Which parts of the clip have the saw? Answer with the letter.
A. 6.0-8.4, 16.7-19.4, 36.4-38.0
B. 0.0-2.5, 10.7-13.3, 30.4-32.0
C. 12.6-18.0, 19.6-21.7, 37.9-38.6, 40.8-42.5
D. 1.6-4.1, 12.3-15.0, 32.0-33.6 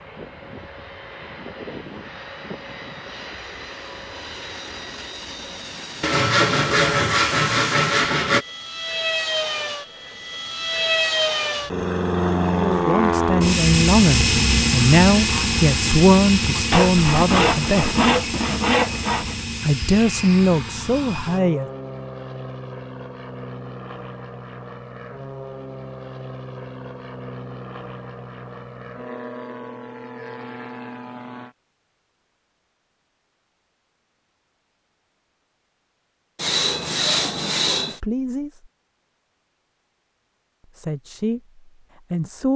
A.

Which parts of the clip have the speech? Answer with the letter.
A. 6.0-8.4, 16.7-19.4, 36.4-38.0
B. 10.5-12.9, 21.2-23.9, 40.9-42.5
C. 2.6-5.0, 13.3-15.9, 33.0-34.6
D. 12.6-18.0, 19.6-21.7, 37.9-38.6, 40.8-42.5
D.